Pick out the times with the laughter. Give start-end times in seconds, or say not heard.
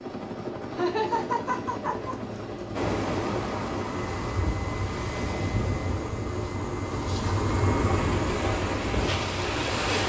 0.7-2.1.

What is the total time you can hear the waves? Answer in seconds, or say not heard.
7 s.